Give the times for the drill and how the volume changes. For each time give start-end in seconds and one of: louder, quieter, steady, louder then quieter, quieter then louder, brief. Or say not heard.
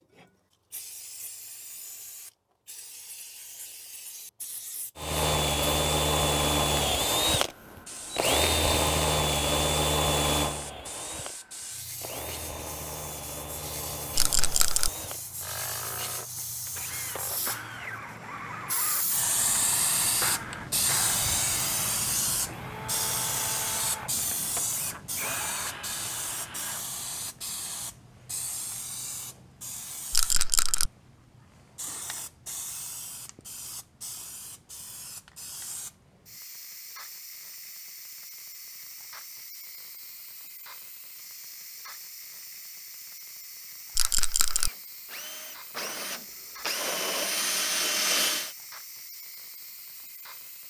5.0-26.9 quieter
44.5-48.5 louder.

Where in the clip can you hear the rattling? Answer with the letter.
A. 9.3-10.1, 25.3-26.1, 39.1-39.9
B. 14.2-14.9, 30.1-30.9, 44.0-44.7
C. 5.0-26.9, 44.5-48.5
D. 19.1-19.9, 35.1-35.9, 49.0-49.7
B.